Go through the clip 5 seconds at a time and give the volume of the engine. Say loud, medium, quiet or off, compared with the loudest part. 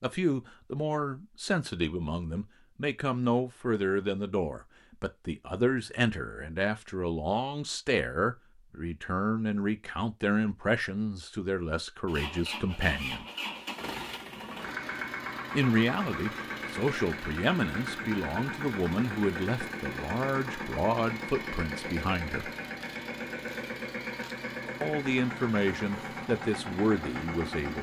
off, off, loud, loud, loud, loud.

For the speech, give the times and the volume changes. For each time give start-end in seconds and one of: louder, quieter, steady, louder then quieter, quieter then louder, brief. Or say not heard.
0.0-13.2 steady
15.6-22.5 steady
24.8-27.7 brief.